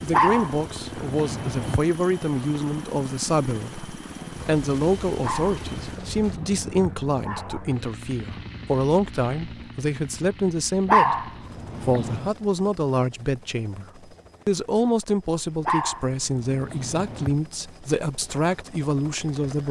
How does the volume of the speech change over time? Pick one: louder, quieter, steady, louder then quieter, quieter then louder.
steady.